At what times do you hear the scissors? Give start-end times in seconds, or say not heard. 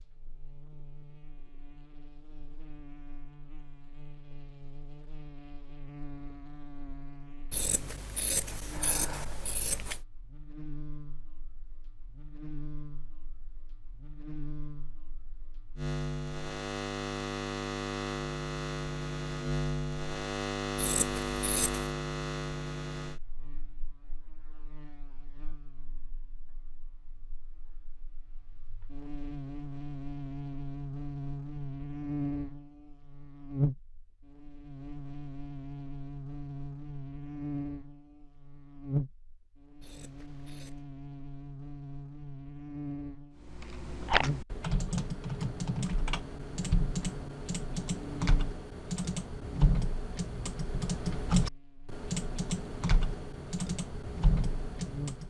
7.5-10.0, 20.8-21.9, 39.8-40.8.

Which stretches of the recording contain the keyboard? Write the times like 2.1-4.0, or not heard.
43.4-55.2.